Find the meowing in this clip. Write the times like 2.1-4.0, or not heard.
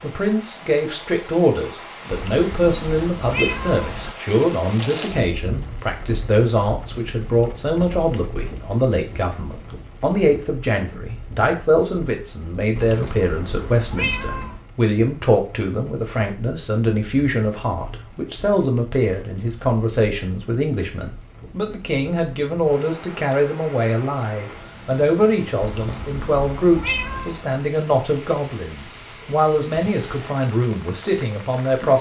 2.1-4.1, 12.8-14.7, 25.6-27.4.